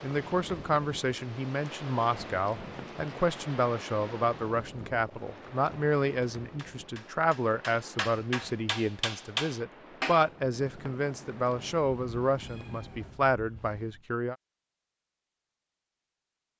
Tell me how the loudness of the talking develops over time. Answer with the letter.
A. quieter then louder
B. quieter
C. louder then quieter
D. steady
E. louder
D.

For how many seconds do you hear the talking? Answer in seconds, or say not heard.
14 s.